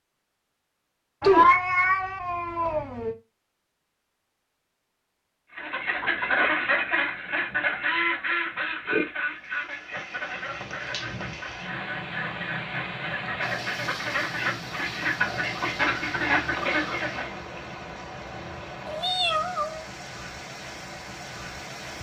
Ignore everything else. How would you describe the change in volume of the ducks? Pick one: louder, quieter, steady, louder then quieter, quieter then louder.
quieter then louder.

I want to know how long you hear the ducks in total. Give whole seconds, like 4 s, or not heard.
12 s.